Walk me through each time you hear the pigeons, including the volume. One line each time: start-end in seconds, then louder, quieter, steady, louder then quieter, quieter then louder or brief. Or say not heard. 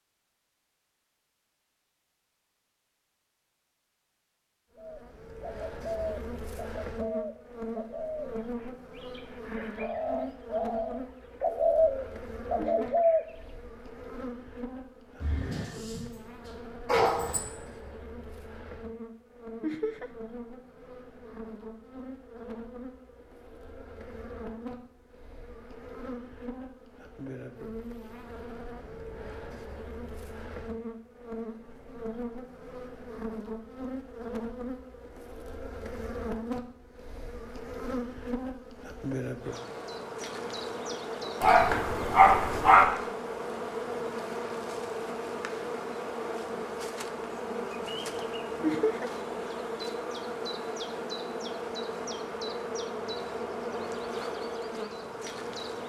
4.8-13.2 quieter then louder.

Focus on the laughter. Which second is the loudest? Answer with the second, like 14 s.
49 s.